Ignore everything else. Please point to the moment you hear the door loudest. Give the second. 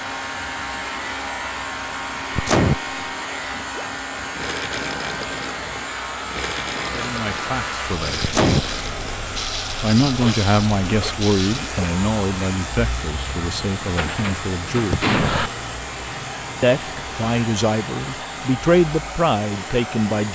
15 s.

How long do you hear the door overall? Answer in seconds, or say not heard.
2 s.